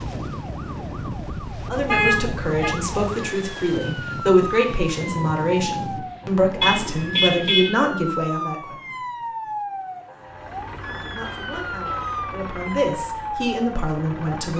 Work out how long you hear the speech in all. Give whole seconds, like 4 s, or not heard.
11 s.